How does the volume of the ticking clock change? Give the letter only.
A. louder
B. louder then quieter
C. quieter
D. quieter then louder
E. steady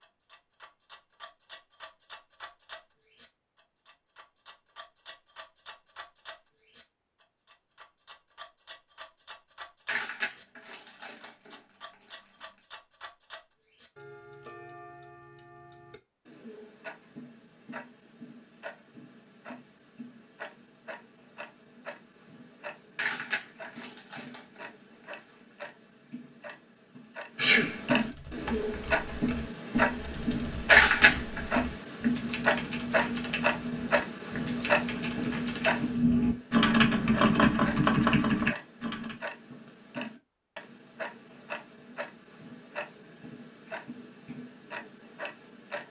B.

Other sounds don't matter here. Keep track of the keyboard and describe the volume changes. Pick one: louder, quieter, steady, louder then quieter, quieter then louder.
louder.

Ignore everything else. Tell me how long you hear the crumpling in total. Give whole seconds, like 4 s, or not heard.
6 s.